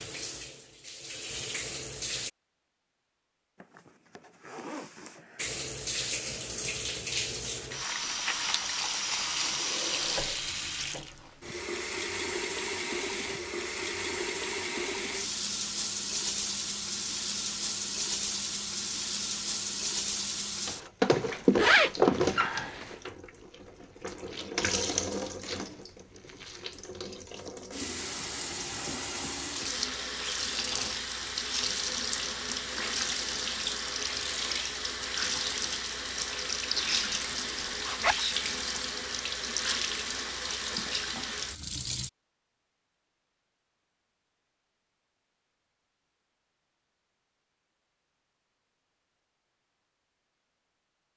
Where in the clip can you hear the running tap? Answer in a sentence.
You can hear the running tap from 0.0 to 2.3 s and from 5.3 to 42.1 s.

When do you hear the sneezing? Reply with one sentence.
You can't hear the sneezing here.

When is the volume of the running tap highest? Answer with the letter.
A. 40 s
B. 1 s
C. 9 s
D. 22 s
D.